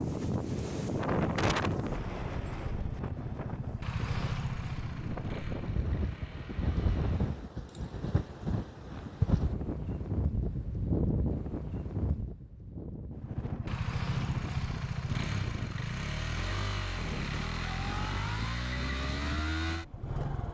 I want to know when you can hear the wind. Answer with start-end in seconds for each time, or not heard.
0.0-20.5.